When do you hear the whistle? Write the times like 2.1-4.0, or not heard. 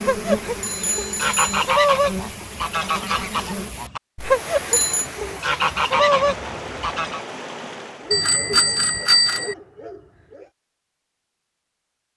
not heard.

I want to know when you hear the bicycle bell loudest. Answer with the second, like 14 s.
9 s.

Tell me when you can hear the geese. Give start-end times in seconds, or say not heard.
0.0-7.2.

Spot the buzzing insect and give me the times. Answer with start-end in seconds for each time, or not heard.
0.0-3.7.